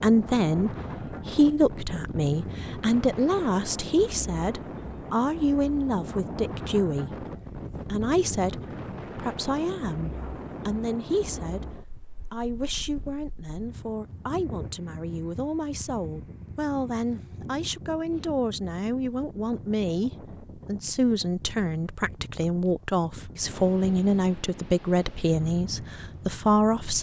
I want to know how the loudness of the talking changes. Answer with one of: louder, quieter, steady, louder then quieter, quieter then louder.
quieter then louder.